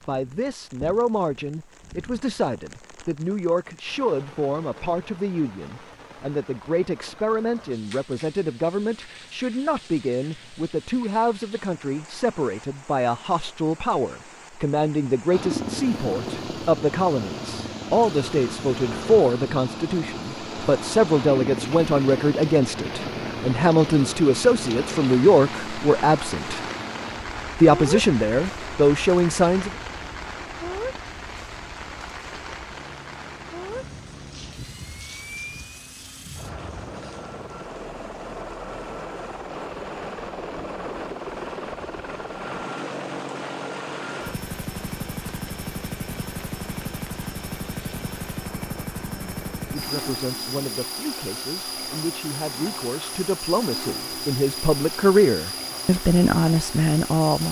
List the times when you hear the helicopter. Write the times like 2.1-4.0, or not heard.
15.3-57.4.